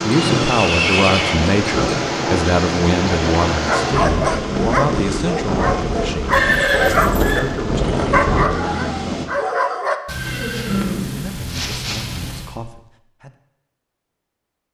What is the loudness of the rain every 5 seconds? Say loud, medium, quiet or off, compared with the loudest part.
loud, loud, off.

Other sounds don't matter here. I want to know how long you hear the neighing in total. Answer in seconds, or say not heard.
5 s.